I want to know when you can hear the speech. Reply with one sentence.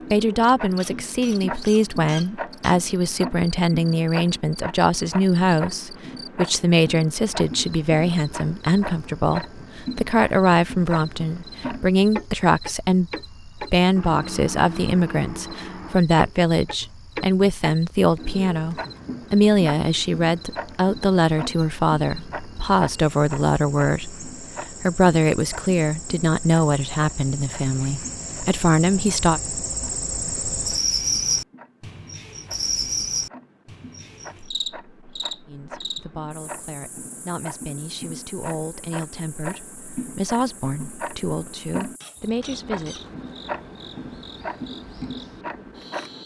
You can hear the speech from 0.1 to 29.4 s and from 35.5 to 43.1 s.